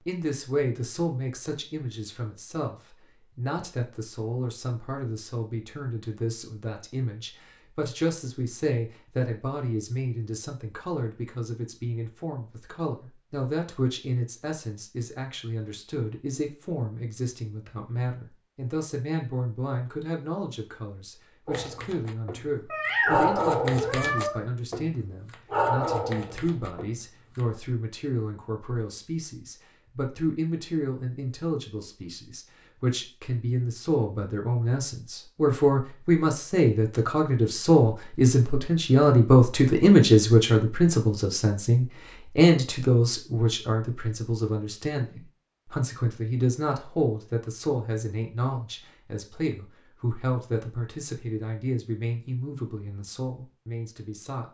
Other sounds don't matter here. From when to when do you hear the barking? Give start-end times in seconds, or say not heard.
21.4-27.4.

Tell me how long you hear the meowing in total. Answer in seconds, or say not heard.
2 s.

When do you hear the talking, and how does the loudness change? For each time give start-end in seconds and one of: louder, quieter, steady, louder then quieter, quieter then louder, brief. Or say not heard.
0.0-54.4 louder then quieter.